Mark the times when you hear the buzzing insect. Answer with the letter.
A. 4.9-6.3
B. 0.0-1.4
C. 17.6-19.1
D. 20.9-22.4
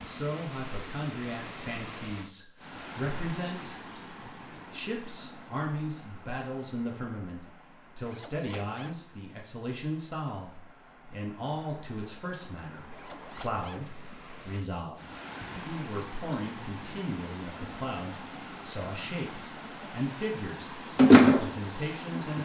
D.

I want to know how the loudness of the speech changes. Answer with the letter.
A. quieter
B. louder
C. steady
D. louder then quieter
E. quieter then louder
C.